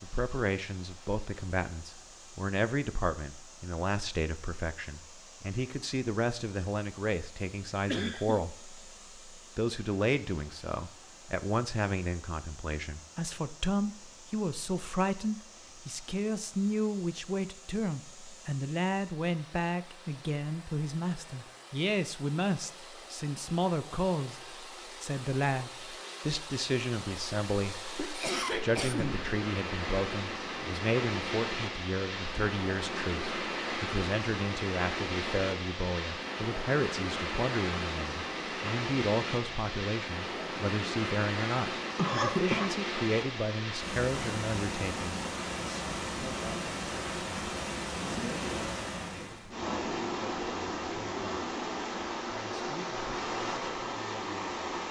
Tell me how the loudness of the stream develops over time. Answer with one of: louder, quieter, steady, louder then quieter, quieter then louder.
louder.